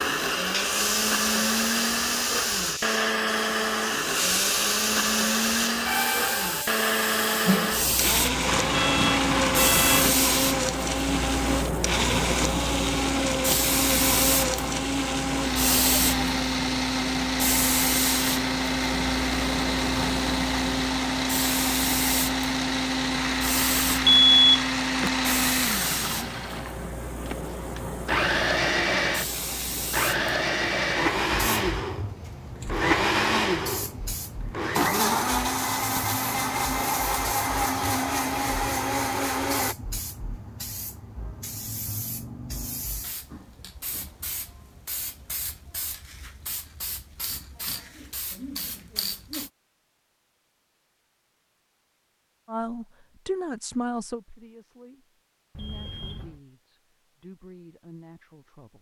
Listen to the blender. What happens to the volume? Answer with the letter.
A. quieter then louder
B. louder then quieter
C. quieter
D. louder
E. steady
E.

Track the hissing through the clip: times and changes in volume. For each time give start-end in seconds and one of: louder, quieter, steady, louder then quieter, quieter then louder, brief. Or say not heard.
0.0-49.5 quieter.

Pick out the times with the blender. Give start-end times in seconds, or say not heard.
0.0-39.8.